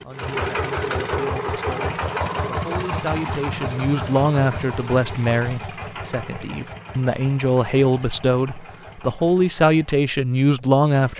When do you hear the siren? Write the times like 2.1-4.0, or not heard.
not heard.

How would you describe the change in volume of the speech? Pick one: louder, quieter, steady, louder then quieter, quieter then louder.
louder.